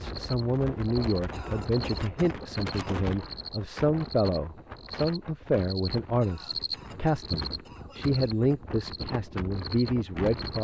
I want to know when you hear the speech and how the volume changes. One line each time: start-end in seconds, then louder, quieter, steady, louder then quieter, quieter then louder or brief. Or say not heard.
0.0-10.5 steady.